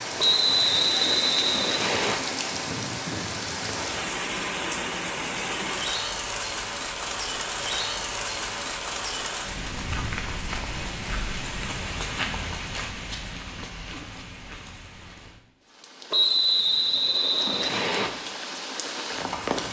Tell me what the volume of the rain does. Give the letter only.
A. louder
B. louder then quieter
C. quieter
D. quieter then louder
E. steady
C.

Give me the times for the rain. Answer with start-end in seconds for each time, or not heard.
0.0-19.6.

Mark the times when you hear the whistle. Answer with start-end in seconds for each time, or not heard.
0.1-2.1, 16.1-18.1.